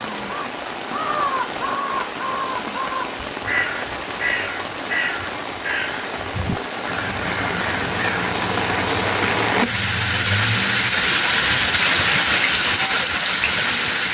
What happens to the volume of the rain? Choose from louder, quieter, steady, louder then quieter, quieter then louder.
louder.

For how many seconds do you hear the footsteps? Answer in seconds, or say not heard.
not heard.